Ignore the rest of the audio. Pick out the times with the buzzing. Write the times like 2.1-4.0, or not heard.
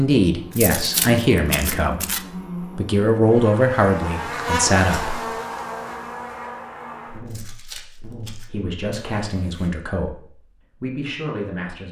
0.2-9.7.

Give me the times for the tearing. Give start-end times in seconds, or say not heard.
0.5-2.2, 7.2-8.5.